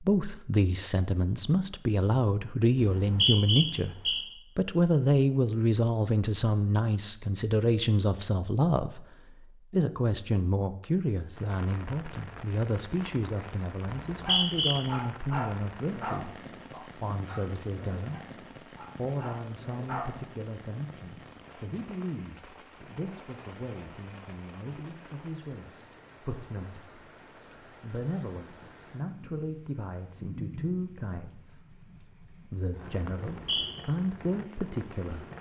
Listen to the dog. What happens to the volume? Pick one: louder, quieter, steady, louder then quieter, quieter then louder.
quieter then louder.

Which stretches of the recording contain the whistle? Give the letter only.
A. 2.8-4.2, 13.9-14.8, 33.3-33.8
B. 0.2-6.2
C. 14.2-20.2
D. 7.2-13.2
A.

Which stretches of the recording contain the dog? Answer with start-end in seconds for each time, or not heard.
14.2-20.2.